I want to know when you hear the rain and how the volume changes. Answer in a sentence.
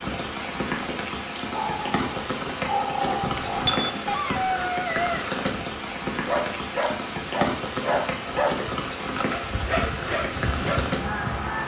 The rain can be heard from 0.0 to 11.6 s, at a steady volume.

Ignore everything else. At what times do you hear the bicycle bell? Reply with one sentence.
You can hear the bicycle bell from 3.2 to 3.9 s.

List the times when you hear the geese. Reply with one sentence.
You can't hear the geese here.